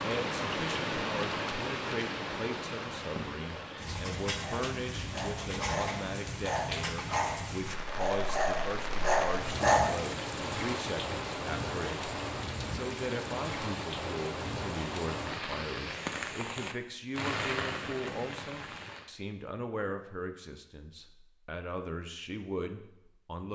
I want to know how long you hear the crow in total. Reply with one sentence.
You can't hear the crow here.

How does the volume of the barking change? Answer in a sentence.
The volume of the barking goes up.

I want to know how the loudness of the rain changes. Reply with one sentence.
The volume of the rain stays about the same.